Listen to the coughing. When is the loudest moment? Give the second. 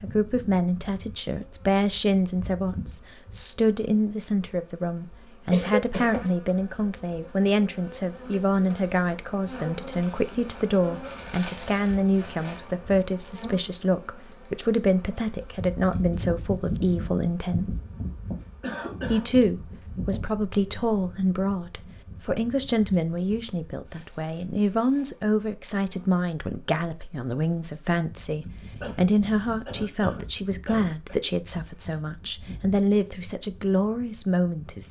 6 s.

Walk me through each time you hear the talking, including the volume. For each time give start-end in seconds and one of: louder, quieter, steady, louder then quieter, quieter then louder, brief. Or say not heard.
0.0-17.8 steady
19.1-34.8 steady.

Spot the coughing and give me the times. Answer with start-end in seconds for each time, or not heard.
5.5-6.2, 18.6-19.3, 28.8-31.2.